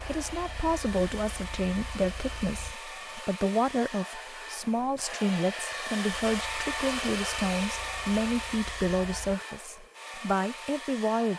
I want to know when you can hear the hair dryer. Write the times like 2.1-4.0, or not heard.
0.0-11.3.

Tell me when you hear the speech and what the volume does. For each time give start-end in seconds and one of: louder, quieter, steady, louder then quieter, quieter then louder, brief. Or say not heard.
0.0-11.3 steady.